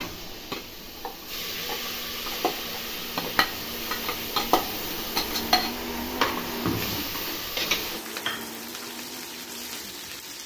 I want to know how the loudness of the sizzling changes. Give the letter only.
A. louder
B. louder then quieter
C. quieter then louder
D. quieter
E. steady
B.